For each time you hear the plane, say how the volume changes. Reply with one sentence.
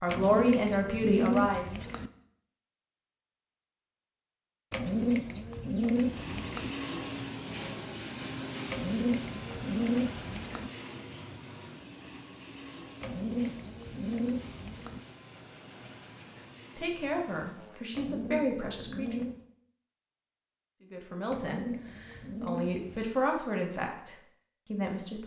You can hear the plane from 5.8 to 17.9 s, getting quieter.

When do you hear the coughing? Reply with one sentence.
You can't hear the coughing here.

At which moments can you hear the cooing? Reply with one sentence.
The cooing can be heard from 0.1 to 2.1 s, from 4.7 to 6.7 s, from 8.7 to 10.7 s, from 13.0 to 15.0 s, from 17.9 to 19.4 s and from 21.3 to 23.1 s.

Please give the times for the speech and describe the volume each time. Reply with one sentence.
You can hear the speech briefly from 0.0 to 1.8 s; briefly from 16.8 to 19.2 s; and from 20.9 to 25.2 s, getting louder then quieter.